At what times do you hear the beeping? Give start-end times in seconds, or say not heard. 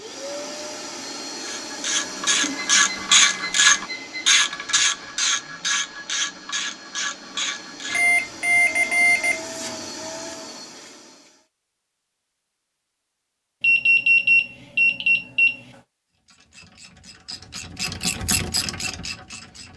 2.4-4.2, 7.8-9.4, 13.6-15.6.